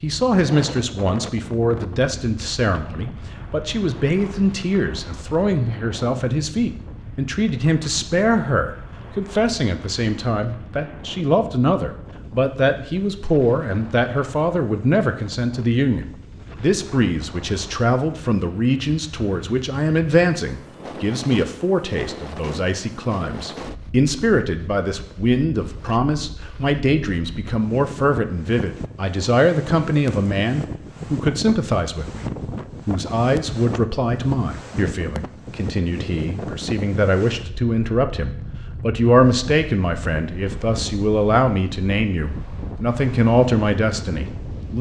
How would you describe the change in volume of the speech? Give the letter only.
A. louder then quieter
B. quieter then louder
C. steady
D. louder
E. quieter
C.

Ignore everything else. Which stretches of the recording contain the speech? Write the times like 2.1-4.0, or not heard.
0.0-44.7.